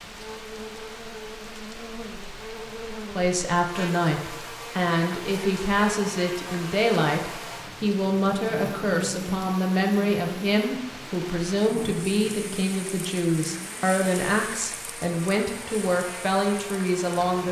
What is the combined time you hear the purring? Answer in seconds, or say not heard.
not heard.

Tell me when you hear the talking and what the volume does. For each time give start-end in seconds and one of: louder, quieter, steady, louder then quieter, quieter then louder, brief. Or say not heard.
3.1-17.4 steady.